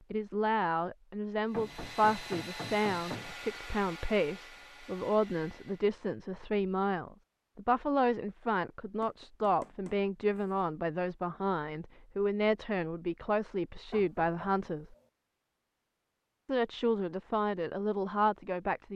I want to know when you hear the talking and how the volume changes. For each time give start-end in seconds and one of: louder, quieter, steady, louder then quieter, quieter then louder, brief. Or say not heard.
0.1-14.9 steady
16.4-18.9 brief.